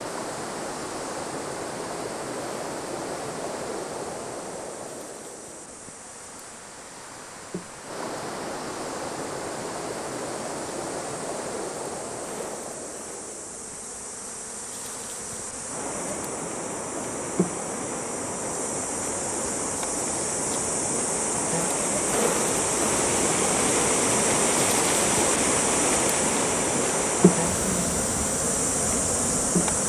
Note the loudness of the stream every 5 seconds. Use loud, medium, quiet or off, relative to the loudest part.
medium, medium, medium, medium, loud, loud.